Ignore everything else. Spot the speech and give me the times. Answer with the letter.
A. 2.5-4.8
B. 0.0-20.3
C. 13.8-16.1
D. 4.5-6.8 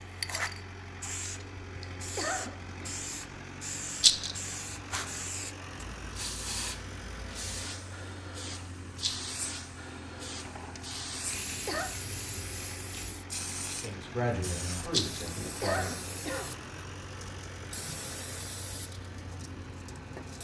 C.